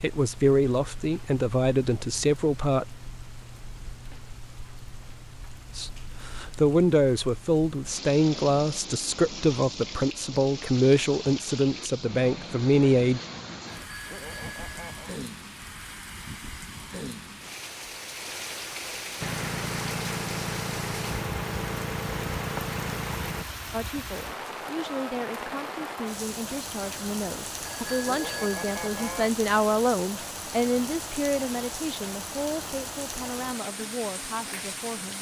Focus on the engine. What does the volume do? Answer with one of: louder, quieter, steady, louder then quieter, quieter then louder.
steady.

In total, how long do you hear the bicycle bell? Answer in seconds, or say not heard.
3 s.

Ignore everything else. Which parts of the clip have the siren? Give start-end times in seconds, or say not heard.
not heard.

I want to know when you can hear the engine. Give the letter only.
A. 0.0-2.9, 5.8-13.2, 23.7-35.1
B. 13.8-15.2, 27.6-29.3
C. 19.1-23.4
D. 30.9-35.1
C.